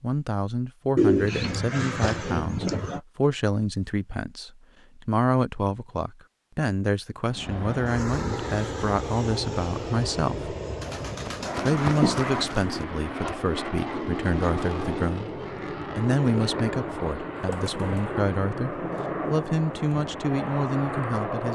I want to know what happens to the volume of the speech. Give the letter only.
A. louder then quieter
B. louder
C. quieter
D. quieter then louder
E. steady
E.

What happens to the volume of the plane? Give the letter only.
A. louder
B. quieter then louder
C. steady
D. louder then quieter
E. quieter
C.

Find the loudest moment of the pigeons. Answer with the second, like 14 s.
1 s.